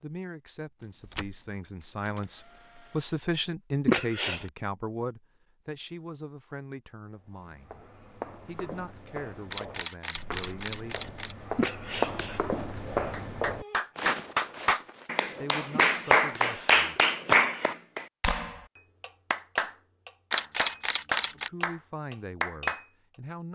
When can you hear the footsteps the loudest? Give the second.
12 s.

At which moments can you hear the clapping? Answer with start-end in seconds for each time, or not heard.
13.1-22.9.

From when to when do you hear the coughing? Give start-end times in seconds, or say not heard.
3.9-4.5, 11.6-12.4, 15.7-17.8.